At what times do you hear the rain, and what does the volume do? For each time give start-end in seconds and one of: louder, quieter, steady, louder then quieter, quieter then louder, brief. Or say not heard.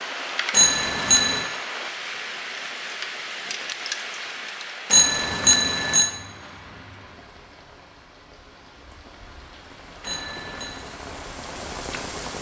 0.0-12.3 quieter then louder.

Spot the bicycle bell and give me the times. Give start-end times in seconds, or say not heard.
0.5-1.4, 4.9-6.1, 10.0-10.8.